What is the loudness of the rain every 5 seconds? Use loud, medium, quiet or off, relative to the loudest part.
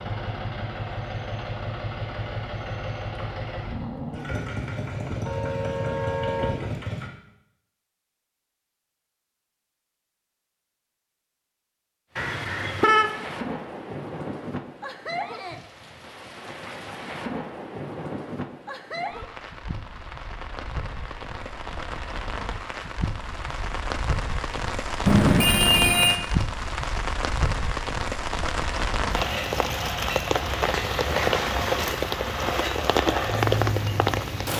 off, off, medium, medium, medium, loud, loud.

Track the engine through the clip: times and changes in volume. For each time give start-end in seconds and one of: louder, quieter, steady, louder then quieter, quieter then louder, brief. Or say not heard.
0.0-7.1 steady
29.1-34.5 steady.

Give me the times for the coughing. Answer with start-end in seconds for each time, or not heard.
not heard.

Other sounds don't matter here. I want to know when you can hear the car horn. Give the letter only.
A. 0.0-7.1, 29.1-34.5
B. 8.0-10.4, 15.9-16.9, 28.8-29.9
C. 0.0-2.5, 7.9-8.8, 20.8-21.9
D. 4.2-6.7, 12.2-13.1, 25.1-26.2
D.